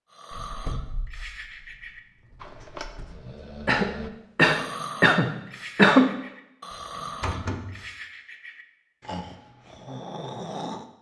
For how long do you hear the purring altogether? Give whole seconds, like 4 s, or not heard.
not heard.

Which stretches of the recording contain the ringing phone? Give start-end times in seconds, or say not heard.
not heard.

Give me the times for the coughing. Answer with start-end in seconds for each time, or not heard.
3.6-6.2.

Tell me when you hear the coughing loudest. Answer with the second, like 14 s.
6 s.